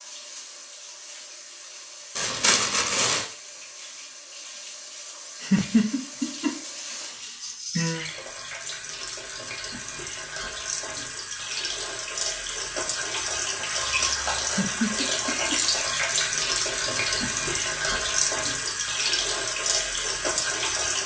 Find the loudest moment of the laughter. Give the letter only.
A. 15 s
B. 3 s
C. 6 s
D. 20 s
C.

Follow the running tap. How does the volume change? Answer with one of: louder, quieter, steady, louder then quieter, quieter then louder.
louder.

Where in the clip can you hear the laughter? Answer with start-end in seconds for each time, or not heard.
5.3-8.1, 14.4-15.6.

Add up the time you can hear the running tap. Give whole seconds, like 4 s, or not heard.
21 s.